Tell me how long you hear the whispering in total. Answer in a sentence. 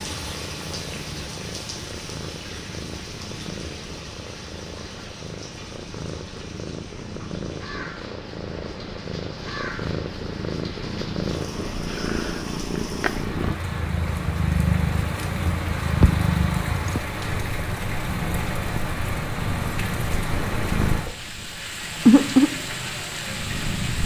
You can't hear the whispering here.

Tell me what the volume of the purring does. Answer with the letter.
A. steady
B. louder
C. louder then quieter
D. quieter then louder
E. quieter
B.